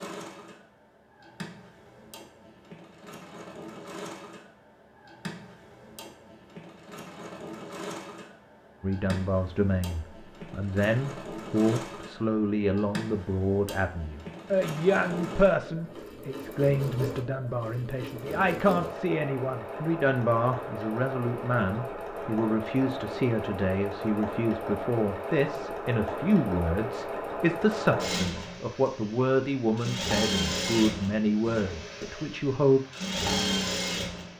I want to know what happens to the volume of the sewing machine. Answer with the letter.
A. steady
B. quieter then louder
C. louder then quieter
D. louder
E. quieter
D.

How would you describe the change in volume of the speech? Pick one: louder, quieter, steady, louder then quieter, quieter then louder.
steady.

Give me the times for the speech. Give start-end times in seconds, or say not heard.
8.8-32.8.